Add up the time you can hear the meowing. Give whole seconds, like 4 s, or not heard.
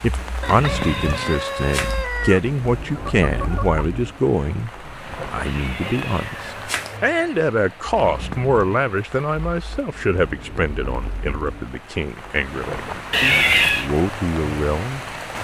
4 s.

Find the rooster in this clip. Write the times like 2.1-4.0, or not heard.
0.4-3.9.